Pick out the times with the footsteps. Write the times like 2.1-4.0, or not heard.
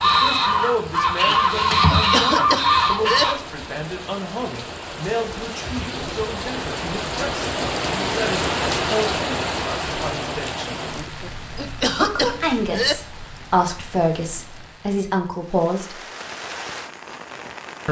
not heard.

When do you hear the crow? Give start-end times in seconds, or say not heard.
0.0-3.4.